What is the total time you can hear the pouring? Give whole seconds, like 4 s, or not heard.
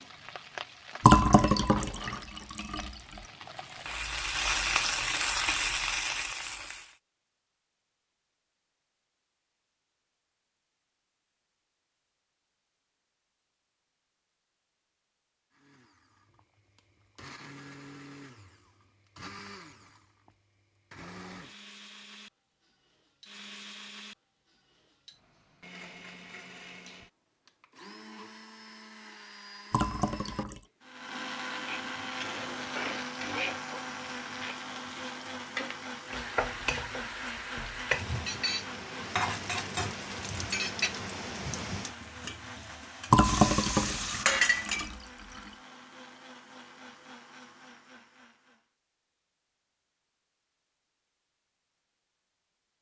5 s.